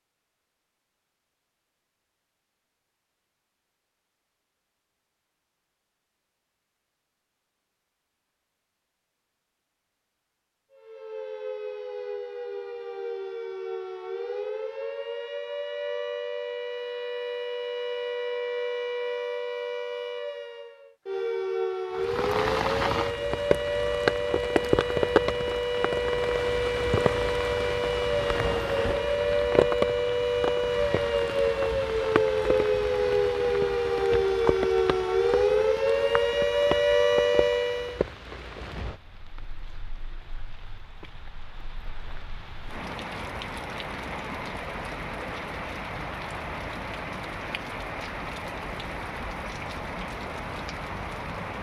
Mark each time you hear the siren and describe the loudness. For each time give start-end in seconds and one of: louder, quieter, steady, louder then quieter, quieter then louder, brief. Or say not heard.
10.7-38.0 louder.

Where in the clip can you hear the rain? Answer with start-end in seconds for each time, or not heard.
21.9-51.5.